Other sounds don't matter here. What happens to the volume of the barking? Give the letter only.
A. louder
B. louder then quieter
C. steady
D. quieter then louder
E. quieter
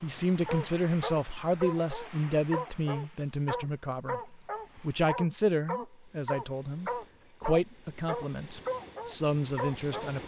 C.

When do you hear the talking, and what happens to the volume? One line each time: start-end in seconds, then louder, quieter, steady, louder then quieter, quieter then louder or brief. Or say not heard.
0.0-10.2 steady.